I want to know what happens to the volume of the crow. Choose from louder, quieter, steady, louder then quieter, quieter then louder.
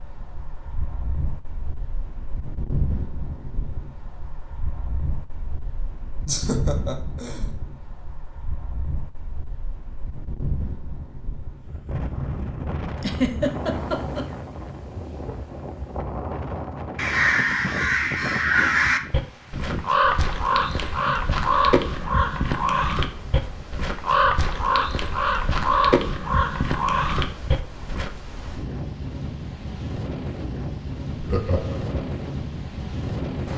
steady.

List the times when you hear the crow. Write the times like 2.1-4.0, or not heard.
16.9-28.1.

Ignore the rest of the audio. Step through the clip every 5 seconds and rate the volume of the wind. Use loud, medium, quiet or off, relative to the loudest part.
medium, medium, loud, loud, medium, medium, loud.